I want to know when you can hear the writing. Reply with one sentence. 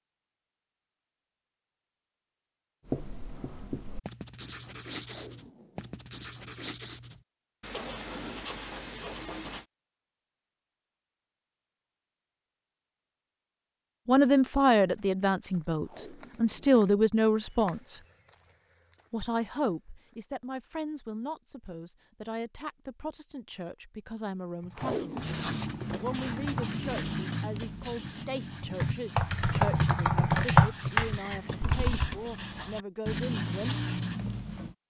The writing can be heard from 2.9 to 9.7 s and from 25.1 to 34.8 s.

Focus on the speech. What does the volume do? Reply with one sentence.
The volume of the speech goes down.